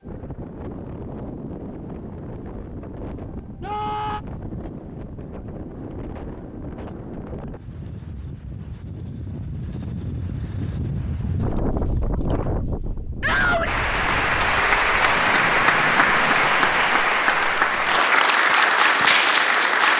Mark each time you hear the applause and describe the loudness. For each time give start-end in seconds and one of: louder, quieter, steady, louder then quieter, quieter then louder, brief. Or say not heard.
13.7-19.9 steady.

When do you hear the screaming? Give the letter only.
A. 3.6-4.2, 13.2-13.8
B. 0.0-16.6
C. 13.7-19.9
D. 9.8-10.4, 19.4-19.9
A.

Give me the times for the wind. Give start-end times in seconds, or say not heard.
0.0-16.6.